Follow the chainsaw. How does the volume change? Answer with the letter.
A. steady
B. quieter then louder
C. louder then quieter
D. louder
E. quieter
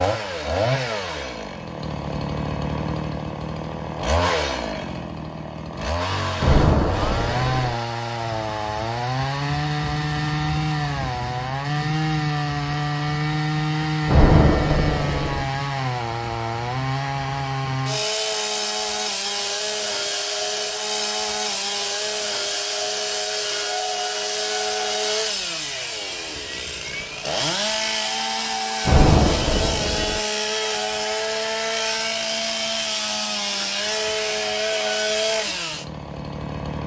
A.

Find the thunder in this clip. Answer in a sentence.
The thunder can be heard from 6.4 to 7.8 s, from 14.1 to 15.4 s and from 28.9 to 30.2 s.